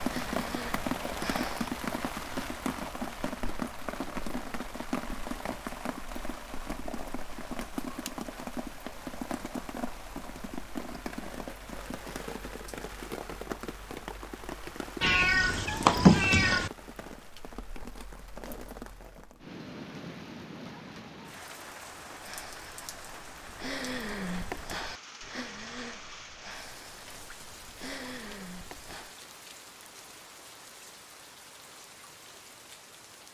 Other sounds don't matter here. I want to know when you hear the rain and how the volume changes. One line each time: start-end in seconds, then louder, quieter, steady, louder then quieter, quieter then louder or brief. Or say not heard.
0.0-33.2 quieter.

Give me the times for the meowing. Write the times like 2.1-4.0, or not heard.
15.0-16.7.